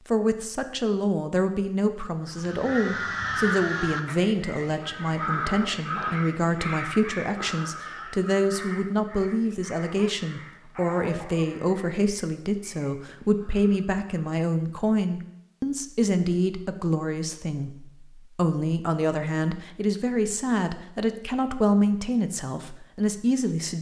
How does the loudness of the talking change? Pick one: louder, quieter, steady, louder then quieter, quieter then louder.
steady.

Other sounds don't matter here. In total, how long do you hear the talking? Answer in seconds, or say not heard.
24 s.